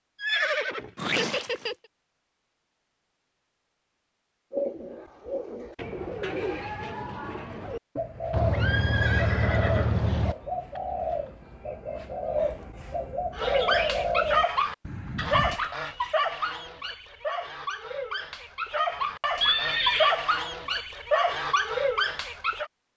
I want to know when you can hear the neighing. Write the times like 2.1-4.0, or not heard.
0.2-1.8, 8.3-10.3, 19.4-20.2.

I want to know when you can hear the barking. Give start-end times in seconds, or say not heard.
13.3-22.7.